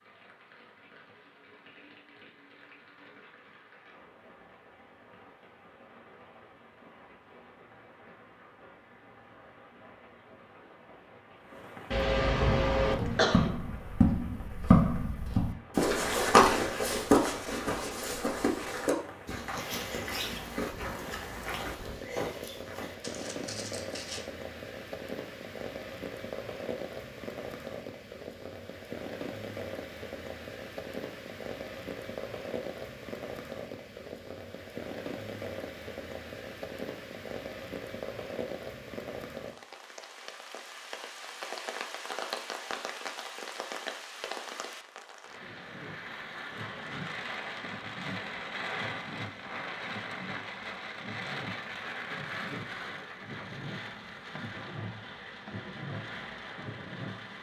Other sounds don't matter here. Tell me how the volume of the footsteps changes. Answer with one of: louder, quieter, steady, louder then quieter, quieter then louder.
quieter.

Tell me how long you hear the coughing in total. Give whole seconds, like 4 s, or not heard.
2 s.